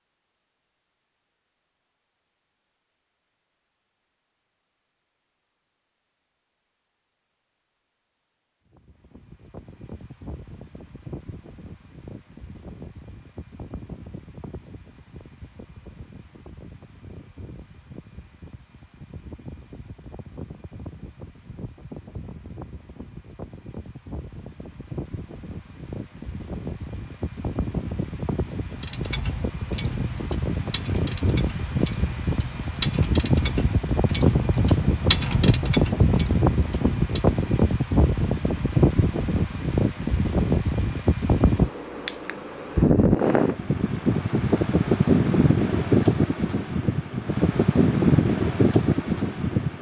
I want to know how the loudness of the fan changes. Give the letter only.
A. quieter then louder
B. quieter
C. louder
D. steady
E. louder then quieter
C.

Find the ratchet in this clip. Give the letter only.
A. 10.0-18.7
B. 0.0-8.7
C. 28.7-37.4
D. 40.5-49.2
C.